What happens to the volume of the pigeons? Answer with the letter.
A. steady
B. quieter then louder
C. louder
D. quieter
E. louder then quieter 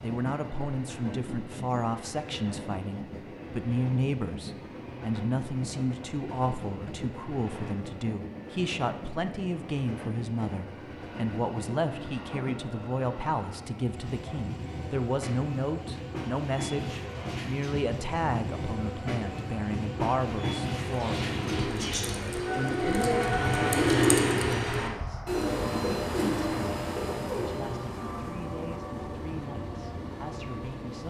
E.